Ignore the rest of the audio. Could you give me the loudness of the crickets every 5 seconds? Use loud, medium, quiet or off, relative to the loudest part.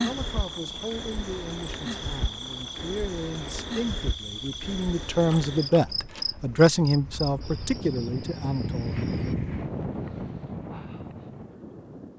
loud, loud, off.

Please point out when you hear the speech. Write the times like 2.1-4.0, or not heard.
0.0-9.1.